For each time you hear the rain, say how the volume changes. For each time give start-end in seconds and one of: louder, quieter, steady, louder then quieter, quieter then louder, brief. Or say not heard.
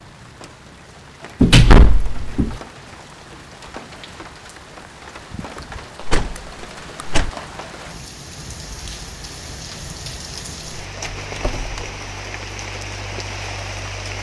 0.0-14.1 louder.